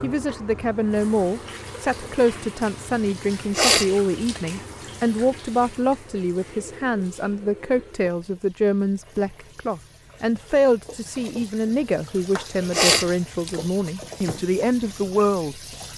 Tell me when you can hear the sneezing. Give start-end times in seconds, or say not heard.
3.5-4.4, 12.7-13.6.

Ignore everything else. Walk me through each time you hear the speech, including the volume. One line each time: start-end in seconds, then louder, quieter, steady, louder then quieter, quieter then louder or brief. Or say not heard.
0.0-15.6 steady.